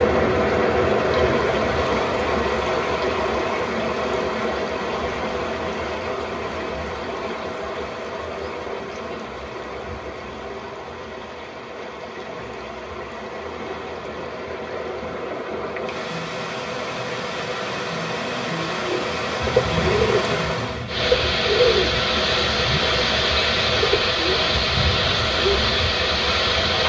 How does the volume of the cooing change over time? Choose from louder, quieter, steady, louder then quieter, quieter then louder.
quieter.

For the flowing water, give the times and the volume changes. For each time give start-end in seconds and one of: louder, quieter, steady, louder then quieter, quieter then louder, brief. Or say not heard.
0.0-26.8 quieter then louder.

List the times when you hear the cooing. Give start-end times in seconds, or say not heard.
18.8-25.6.